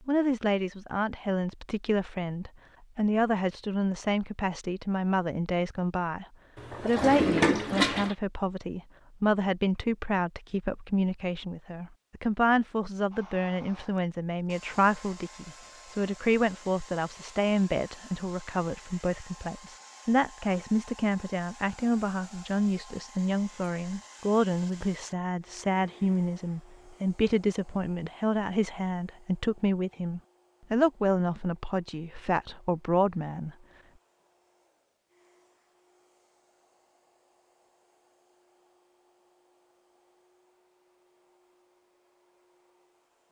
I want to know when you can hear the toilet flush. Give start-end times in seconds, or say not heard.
6.5-8.2.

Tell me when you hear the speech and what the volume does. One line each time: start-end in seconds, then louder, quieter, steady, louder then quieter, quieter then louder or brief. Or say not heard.
0.1-33.5 steady.